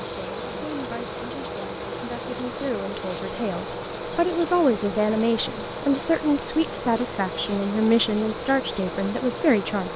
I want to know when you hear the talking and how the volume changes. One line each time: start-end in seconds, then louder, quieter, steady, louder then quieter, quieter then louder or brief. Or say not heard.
0.0-9.9 louder.